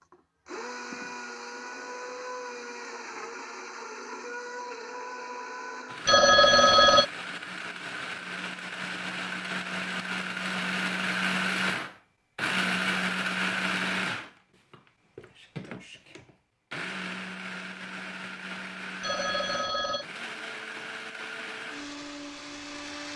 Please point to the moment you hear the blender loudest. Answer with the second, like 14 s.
13 s.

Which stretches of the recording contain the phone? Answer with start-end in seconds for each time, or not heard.
6.0-7.0, 19.0-20.1.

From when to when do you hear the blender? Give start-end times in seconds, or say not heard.
0.0-23.1.